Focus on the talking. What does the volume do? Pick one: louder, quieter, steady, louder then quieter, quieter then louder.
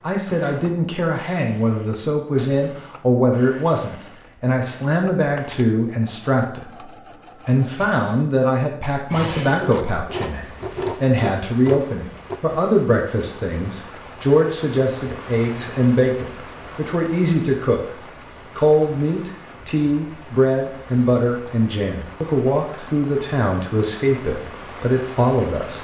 steady.